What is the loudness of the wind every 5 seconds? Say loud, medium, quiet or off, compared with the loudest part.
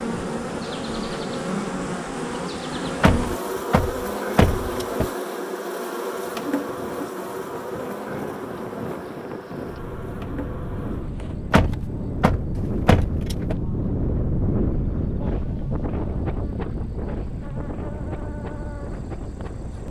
off, medium, loud, loud.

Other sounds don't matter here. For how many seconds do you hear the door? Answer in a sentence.
You can hear the door for 4 seconds altogether.